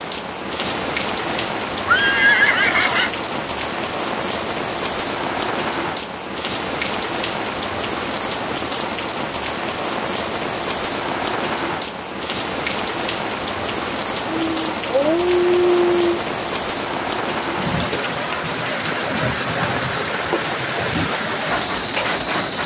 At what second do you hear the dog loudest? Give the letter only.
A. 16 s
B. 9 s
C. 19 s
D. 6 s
A.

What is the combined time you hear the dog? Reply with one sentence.
The dog can be heard for 2 seconds in total.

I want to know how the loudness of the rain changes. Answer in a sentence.
The volume of the rain stays about the same.